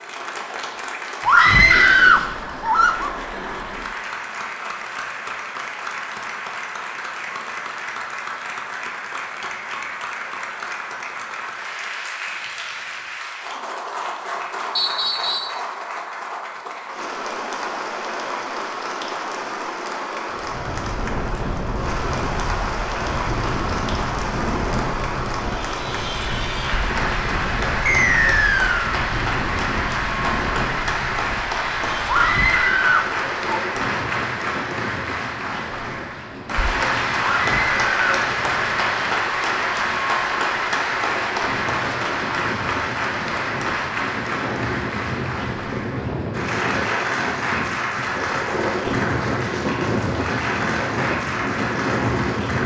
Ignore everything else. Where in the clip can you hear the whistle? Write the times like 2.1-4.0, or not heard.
14.8-15.6, 27.9-28.9.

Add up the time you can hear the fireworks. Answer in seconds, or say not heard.
not heard.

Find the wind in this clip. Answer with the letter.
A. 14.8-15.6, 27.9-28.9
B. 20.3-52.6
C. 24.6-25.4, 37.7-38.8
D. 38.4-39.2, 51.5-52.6
B.